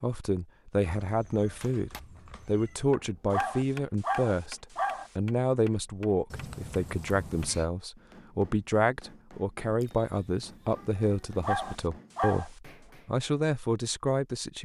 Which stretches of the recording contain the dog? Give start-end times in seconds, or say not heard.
3.3-5.1, 11.4-12.5.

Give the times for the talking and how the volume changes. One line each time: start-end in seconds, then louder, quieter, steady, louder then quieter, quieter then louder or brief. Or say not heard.
0.0-14.5 steady.